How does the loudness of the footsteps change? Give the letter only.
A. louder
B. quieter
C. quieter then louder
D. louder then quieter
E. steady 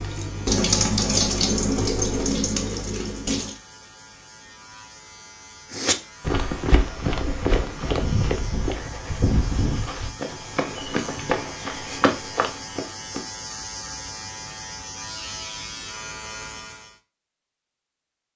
E.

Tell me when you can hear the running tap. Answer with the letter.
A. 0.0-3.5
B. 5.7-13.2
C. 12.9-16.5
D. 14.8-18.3
A.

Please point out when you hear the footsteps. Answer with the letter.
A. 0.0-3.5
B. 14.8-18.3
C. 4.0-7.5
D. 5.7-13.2
D.